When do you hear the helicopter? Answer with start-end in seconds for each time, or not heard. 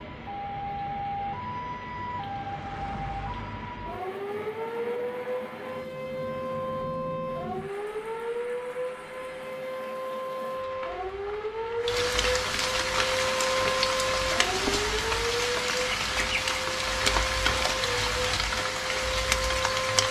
not heard.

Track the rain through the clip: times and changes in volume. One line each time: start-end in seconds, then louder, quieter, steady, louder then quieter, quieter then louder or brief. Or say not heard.
0.0-20.0 louder.